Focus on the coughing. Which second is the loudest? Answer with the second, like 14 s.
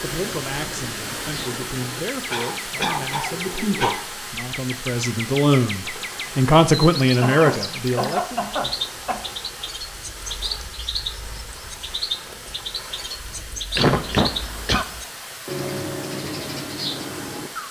14 s.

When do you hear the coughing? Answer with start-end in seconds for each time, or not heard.
2.3-4.0, 7.2-9.2, 13.8-14.8.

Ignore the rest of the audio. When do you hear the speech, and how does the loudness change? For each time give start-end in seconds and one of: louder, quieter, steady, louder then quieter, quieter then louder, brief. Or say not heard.
0.0-8.4 louder.